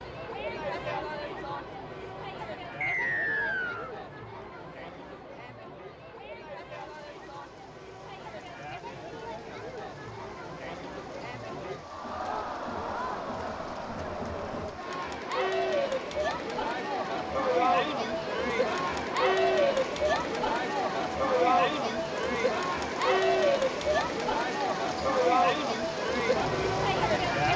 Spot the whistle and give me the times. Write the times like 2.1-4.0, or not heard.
2.8-3.9.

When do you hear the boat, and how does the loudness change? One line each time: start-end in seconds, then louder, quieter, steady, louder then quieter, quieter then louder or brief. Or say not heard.
not heard.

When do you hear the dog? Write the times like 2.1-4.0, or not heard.
not heard.